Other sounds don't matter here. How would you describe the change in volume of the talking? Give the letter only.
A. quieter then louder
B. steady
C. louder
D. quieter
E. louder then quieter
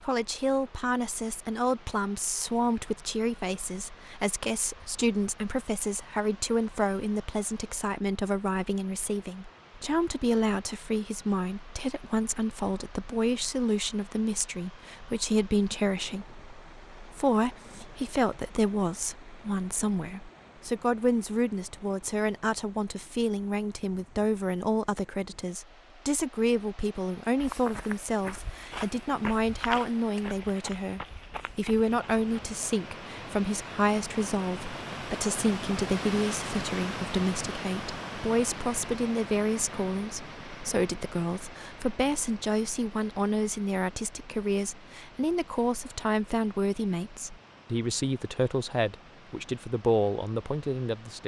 B.